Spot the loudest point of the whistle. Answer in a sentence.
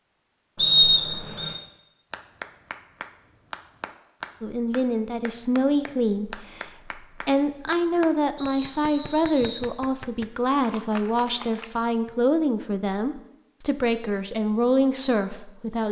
The volume of the whistle peaks at 1 second.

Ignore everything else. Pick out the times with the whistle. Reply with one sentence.
The whistle can be heard from 0.6 to 1.6 s and from 8.3 to 9.7 s.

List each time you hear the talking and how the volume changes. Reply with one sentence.
The talking can be heard from 4.4 to 15.8 s, at a steady volume.